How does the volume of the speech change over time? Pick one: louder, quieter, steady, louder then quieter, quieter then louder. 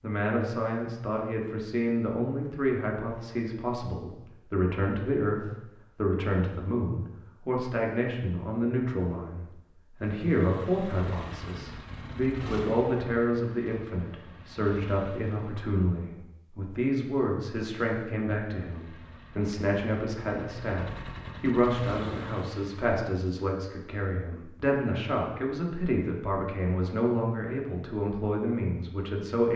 steady.